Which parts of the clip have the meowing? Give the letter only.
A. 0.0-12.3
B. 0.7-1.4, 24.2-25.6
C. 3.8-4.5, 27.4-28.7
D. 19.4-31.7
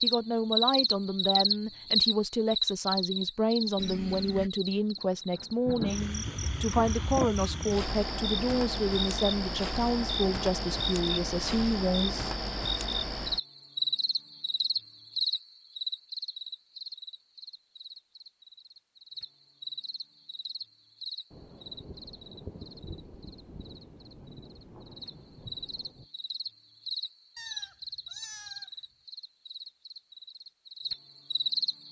C.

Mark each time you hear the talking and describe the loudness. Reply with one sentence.
You can hear the talking from 0.0 to 12.3 s, at a steady volume.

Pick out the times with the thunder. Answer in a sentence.
The thunder can be heard from 5.0 to 7.0 s and from 21.3 to 26.1 s.